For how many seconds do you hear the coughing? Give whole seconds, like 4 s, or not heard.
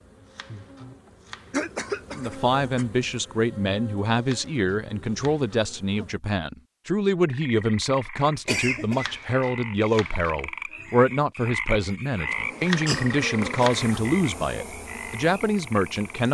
3 s.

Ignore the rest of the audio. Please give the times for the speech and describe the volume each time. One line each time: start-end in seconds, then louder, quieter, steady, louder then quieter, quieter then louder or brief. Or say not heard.
2.1-16.3 steady.